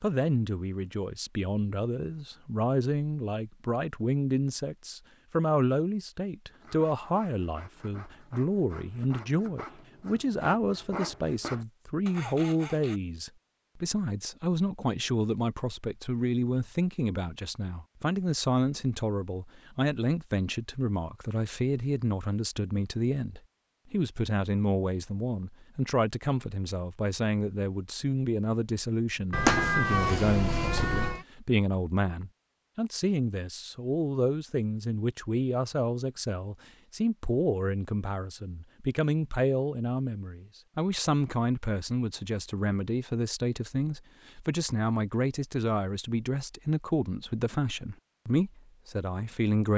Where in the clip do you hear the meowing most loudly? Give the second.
30 s.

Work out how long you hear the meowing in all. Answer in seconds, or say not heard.
2 s.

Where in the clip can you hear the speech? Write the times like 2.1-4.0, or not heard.
0.0-49.7.